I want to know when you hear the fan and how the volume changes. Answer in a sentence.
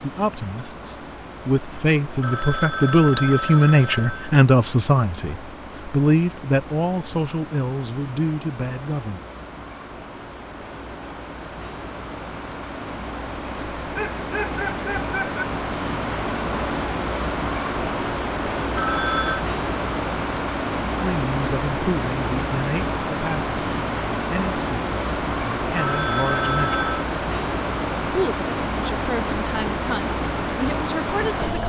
The fan can be heard from 0.0 to 31.6 s, getting louder.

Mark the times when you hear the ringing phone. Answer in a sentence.
The ringing phone can be heard from 2.2 to 4.3 s, from 18.8 to 19.4 s and from 25.8 to 27.1 s.